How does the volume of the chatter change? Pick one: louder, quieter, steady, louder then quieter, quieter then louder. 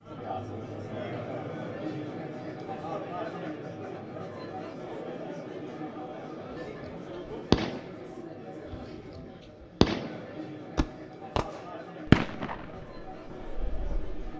quieter.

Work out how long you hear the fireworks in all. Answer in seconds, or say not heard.
8 s.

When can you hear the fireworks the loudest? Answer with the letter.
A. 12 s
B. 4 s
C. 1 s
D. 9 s
A.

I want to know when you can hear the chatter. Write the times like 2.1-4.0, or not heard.
0.0-14.3.